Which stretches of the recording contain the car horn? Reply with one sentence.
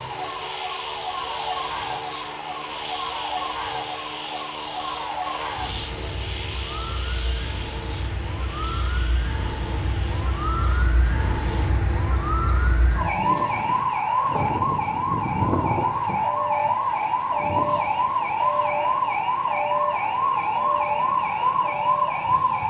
You can't hear the car horn here.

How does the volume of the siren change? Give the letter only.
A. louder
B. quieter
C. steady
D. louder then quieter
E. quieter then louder
A.